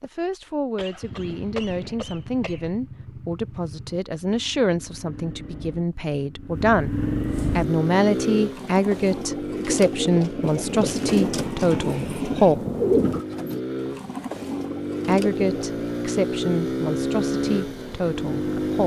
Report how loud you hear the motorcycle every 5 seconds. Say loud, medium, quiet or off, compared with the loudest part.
quiet, loud, medium, loud.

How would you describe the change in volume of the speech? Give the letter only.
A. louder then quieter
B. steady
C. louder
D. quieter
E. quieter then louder
A.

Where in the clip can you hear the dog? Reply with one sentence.
The dog can't be heard in this clip.